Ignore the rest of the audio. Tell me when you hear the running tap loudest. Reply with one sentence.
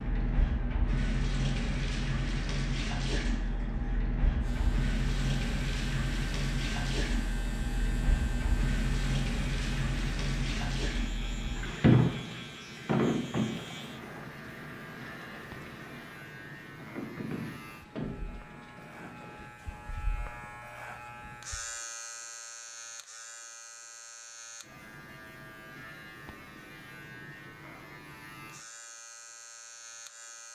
The loudest moment of the running tap is at 12 seconds.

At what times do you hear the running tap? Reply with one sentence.
You can hear the running tap from 0.0 to 19.5 s.